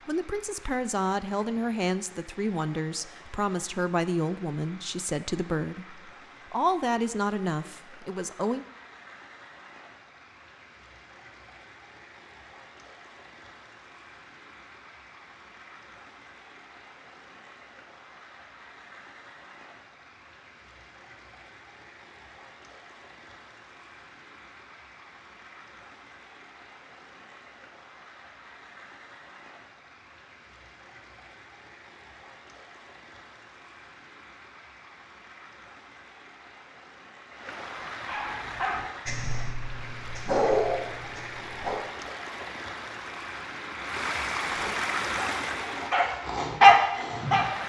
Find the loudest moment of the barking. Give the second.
47 s.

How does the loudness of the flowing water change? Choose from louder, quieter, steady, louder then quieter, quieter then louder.
louder.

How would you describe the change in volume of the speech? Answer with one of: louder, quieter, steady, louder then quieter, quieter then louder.
steady.